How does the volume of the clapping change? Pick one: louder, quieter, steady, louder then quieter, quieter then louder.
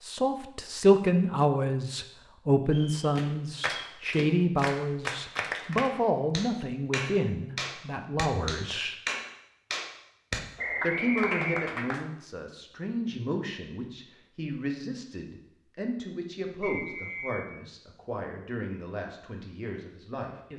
steady.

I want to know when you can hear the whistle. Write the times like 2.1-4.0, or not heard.
2.6-4.0, 10.6-11.8, 16.6-17.4.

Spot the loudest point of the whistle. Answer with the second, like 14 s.
11 s.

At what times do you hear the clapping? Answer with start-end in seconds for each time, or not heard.
3.1-12.1.